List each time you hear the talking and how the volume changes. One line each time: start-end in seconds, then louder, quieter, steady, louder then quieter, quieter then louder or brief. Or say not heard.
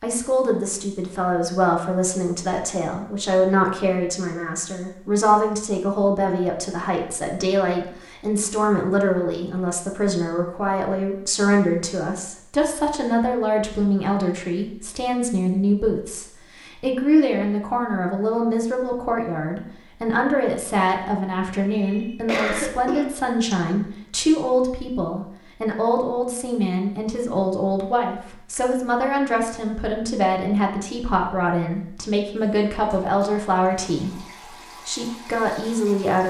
0.0-36.2 steady.